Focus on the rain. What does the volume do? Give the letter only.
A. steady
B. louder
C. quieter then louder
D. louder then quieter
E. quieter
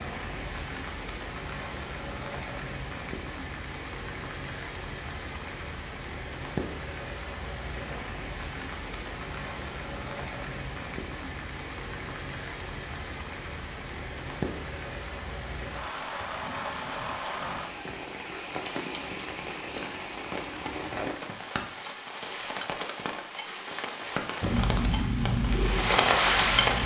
B.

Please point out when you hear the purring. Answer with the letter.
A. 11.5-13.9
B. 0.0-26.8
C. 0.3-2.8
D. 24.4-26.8
D.